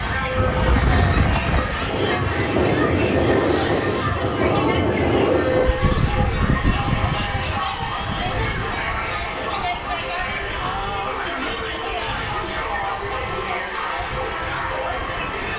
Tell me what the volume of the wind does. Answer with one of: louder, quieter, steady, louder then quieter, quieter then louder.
quieter.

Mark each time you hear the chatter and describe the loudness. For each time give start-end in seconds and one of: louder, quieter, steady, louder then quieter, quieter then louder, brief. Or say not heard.
0.0-15.5 steady.